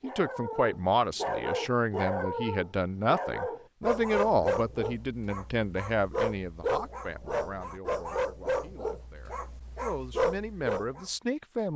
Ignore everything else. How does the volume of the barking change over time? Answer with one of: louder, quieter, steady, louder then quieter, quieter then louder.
steady.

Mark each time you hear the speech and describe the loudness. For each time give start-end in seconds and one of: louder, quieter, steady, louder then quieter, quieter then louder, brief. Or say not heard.
0.0-11.7 quieter then louder.